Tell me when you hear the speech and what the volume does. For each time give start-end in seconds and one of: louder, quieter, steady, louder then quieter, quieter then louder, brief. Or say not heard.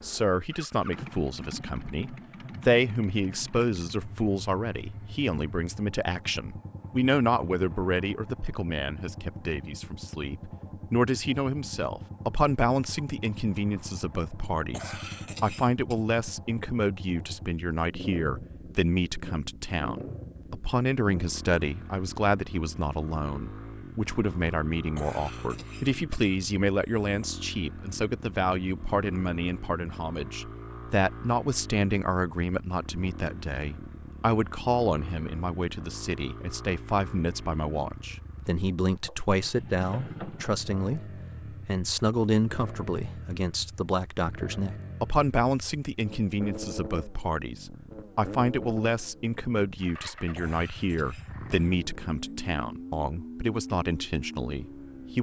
0.0-55.1 steady.